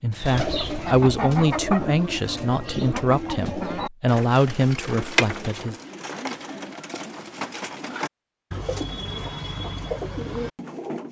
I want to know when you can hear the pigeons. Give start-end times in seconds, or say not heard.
0.1-11.0.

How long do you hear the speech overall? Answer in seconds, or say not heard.
6 s.